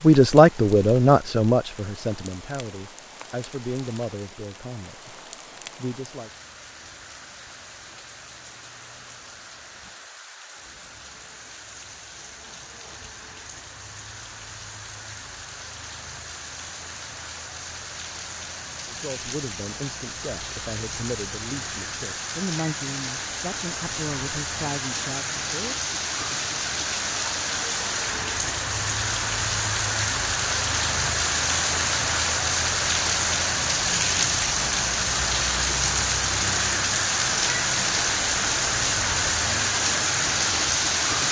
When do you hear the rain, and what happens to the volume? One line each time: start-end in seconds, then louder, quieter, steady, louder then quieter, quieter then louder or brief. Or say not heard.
0.0-41.2 louder.